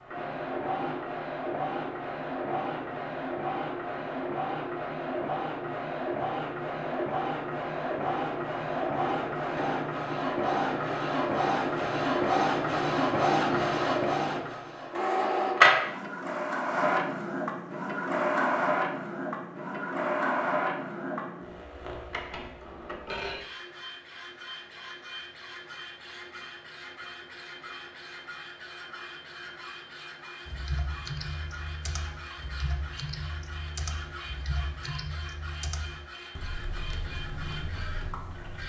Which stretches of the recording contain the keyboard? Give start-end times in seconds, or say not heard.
30.4-38.6.